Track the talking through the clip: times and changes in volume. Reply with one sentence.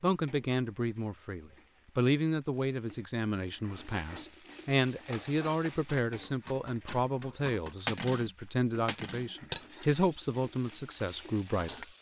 You can hear the talking from 0.0 to 11.8 s, at a steady volume.